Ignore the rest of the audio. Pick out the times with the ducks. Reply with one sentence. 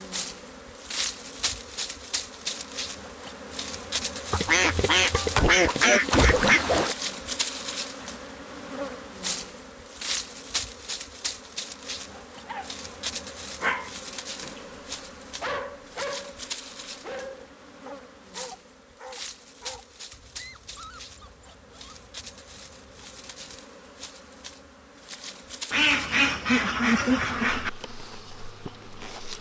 You can hear the ducks from 4.3 to 7.0 s and from 25.7 to 27.7 s.